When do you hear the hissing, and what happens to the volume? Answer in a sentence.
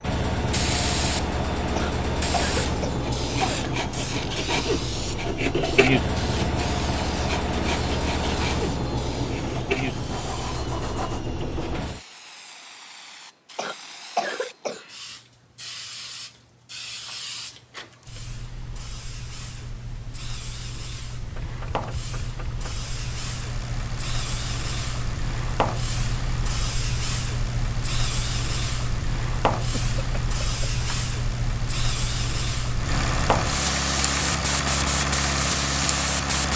You can hear the hissing from 0.0 to 36.5 s, getting quieter then louder.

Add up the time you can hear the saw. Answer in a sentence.
The saw can be heard for 8 seconds in total.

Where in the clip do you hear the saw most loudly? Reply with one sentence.
The loudest moment of the saw is at 6 seconds.